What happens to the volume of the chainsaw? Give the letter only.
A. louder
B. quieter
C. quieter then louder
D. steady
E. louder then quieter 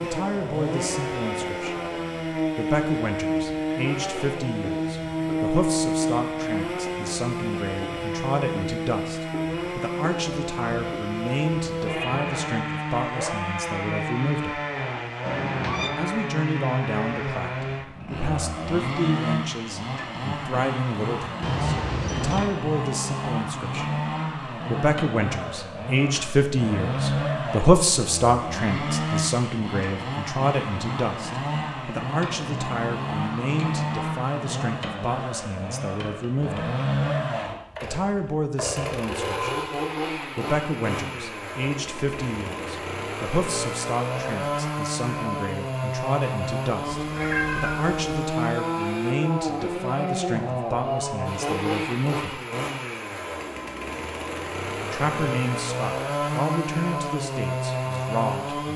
D.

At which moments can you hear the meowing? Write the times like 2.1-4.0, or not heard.
15.2-15.9, 21.4-22.6, 46.9-48.0.